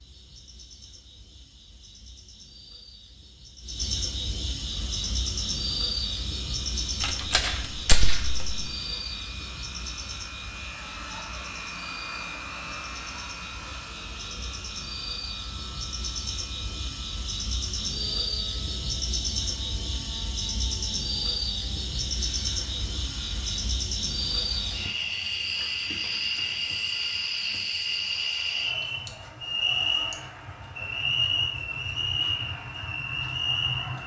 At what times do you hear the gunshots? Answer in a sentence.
The gunshots can be heard from 7.0 to 8.7 s.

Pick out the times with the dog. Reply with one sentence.
The dog can't be heard in this clip.